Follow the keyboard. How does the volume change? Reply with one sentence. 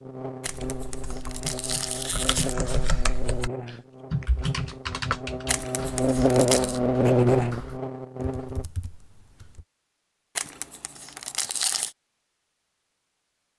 The loudness of the keyboard goes up, then down.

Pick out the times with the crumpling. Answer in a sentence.
You can hear the crumpling from 0.4 to 2.5 s, from 5.5 to 6.8 s and from 10.3 to 11.9 s.